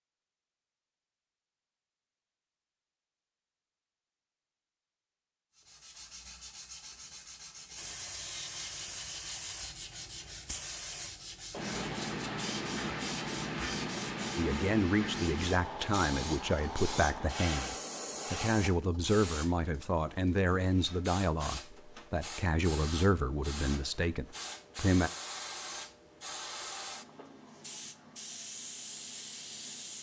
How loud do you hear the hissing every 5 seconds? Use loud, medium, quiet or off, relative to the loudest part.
off, medium, loud, loud, medium, medium.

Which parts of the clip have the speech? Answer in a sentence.
You can hear the speech from 14.3 to 25.1 s.